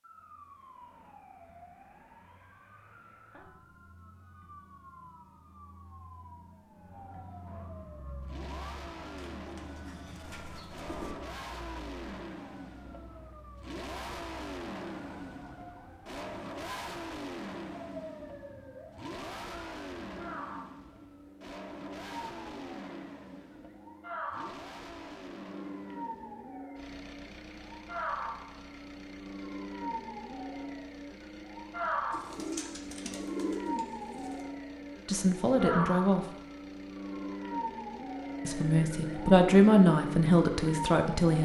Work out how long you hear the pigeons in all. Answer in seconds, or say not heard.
4 s.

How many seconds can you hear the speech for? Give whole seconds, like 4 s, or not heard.
4 s.